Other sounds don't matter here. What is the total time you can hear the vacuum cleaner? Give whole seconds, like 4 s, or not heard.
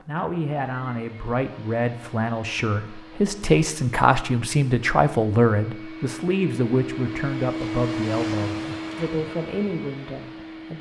11 s.